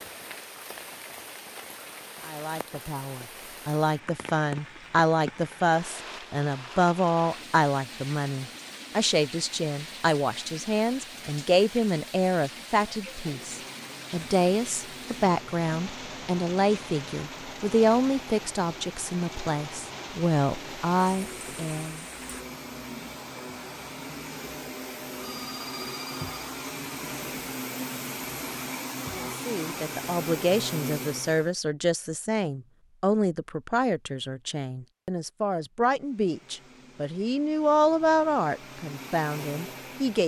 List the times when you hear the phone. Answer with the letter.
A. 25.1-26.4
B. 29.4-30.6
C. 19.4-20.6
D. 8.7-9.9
A.